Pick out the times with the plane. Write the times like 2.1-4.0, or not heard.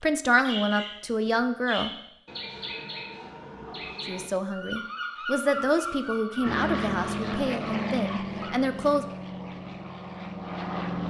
6.5-11.0.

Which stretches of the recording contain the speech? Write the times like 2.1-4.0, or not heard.
0.0-1.9, 4.0-9.1.